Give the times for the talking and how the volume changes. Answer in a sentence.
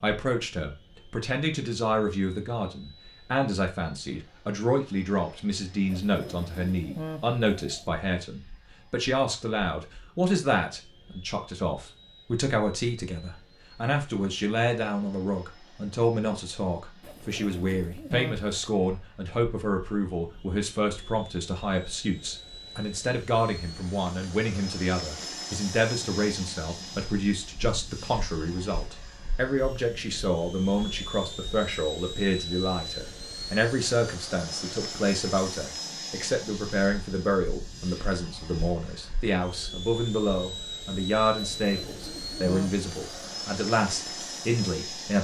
The talking can be heard from 0.0 to 45.1 s, at a steady volume.